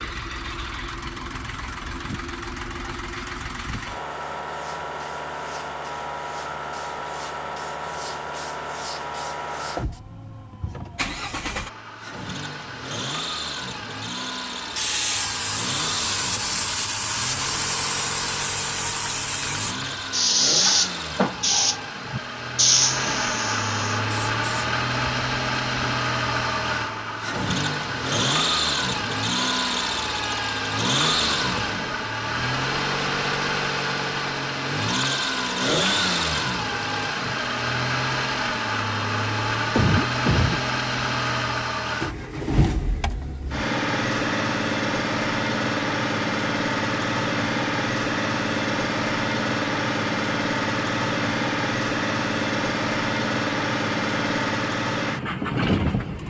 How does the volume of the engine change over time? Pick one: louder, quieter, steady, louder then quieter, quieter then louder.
louder.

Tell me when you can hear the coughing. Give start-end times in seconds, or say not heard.
39.8-40.6.